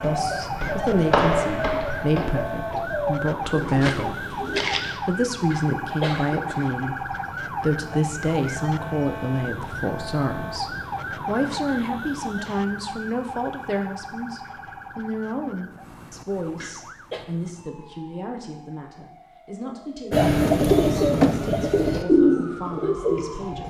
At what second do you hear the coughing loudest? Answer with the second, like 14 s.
6 s.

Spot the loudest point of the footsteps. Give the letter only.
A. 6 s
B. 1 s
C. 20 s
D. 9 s
B.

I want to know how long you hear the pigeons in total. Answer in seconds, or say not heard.
8 s.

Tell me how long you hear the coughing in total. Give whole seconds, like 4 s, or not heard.
2 s.